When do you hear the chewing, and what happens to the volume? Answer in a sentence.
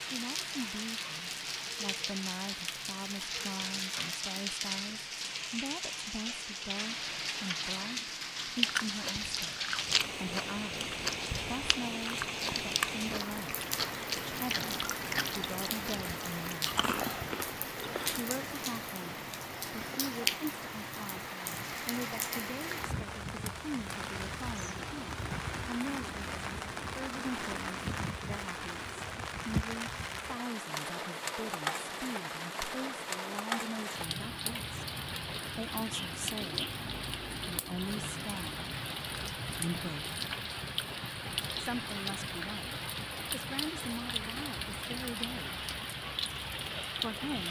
The chewing can be heard from 8.6 to 18.2 s, at a steady volume.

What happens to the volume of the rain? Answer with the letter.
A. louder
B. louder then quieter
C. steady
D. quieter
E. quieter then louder
C.